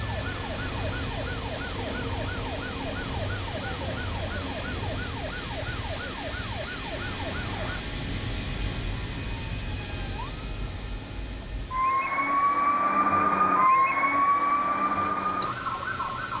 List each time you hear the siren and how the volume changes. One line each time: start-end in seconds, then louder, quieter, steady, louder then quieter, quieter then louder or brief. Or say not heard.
0.0-16.3 louder.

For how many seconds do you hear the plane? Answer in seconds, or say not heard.
16 s.